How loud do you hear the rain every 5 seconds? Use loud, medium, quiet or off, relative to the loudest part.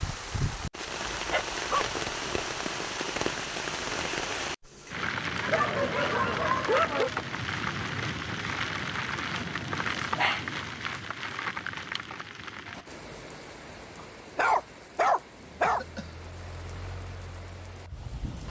loud, loud, medium, quiet.